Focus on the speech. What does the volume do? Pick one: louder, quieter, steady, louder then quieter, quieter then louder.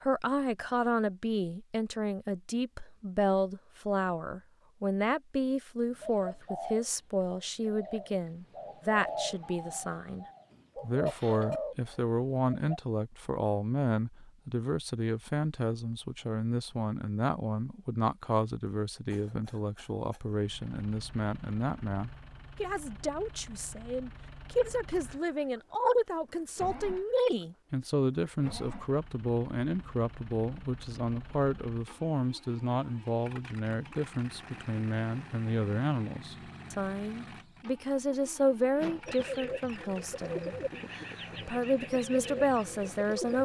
steady.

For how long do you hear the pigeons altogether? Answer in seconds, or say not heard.
11 s.